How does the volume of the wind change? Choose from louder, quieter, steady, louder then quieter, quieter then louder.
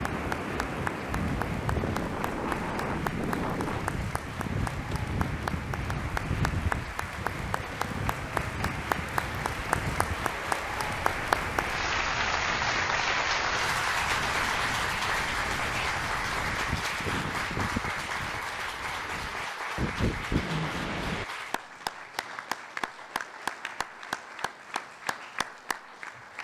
quieter then louder.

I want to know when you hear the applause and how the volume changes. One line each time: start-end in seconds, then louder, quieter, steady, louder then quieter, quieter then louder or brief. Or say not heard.
0.0-26.3 louder then quieter.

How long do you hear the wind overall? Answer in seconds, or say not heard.
21 s.